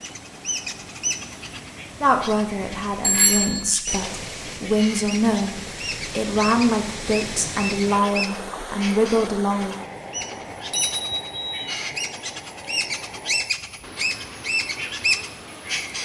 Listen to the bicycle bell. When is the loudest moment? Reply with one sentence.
The volume of the bicycle bell peaks at 3 seconds.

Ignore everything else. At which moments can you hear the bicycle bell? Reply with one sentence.
The bicycle bell can be heard from 3.0 to 3.6 s and from 10.3 to 11.6 s.